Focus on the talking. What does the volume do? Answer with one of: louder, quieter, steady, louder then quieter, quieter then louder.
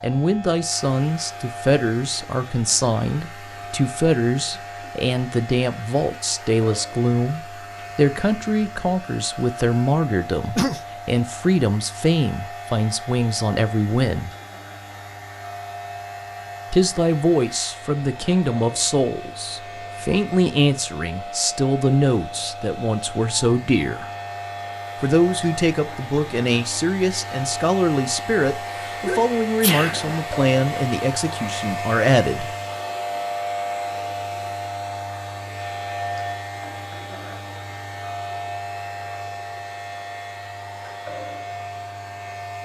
steady.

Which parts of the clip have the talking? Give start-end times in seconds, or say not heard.
0.0-14.3, 16.7-24.1, 25.0-32.5.